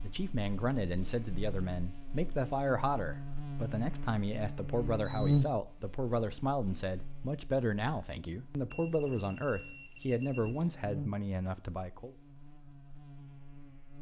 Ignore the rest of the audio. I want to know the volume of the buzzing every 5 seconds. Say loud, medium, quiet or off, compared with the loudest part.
medium, loud, medium.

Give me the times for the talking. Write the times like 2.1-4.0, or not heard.
0.0-12.2.